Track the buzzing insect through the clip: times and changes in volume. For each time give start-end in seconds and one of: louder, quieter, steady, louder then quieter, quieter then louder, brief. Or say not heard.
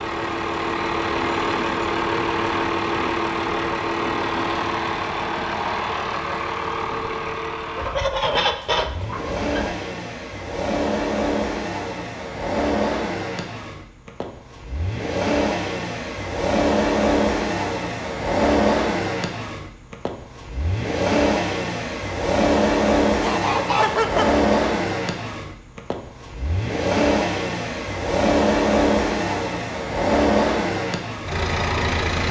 not heard.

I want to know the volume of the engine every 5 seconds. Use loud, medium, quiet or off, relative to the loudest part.
loud, medium, medium, loud, loud, loud, loud.